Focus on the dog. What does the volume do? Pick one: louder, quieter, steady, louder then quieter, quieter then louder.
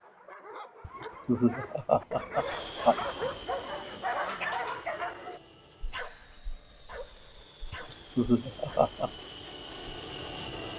louder then quieter.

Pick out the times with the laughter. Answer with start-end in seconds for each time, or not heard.
0.8-3.0, 7.7-9.1.